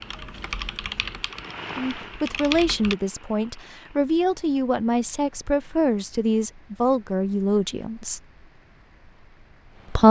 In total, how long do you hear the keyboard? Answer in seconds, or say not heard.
3 s.